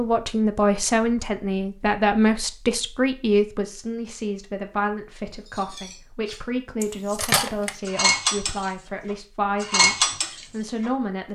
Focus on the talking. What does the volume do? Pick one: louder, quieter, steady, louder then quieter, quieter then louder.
quieter.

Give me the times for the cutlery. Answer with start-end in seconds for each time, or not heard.
5.3-10.9.